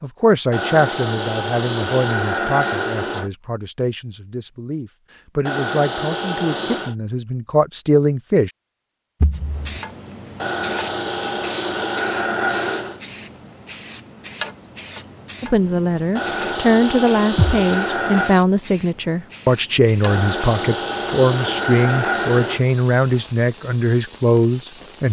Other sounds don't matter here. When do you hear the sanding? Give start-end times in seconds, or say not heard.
0.5-3.3, 5.5-7.0, 10.3-13.0, 16.1-18.4, 20.0-22.6.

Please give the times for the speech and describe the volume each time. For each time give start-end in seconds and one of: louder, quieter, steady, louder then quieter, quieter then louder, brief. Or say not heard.
0.0-8.5 quieter then louder
15.4-25.0 steady.